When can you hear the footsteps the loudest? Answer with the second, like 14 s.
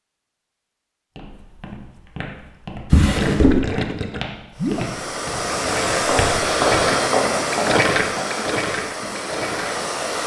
7 s.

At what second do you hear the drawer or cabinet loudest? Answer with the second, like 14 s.
3 s.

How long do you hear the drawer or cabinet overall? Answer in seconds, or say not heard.
2 s.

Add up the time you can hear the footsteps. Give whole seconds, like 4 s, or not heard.
7 s.